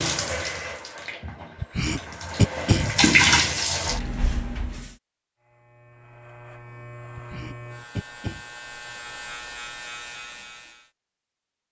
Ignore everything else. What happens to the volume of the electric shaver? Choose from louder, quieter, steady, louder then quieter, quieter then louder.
louder.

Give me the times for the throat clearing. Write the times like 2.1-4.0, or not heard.
1.6-3.1, 7.2-8.4.